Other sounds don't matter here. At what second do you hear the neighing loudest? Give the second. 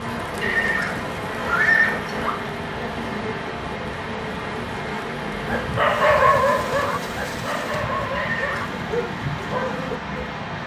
2 s.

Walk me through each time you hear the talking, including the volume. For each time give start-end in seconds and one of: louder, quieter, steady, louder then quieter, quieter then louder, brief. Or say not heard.
not heard.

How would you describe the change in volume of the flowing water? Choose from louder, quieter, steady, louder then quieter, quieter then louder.
steady.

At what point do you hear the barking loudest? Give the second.
6 s.